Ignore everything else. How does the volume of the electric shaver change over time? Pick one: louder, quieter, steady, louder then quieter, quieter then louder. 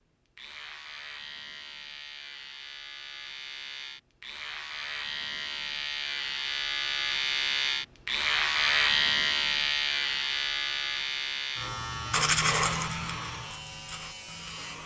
louder then quieter.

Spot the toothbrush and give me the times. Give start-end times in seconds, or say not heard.
12.1-14.8.